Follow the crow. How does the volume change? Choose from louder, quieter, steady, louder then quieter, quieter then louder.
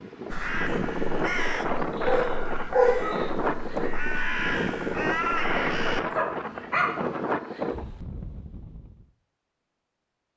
quieter then louder.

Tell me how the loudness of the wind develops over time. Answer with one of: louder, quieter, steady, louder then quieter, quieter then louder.
steady.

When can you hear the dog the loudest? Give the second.
3 s.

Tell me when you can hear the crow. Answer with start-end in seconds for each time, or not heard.
0.3-6.0.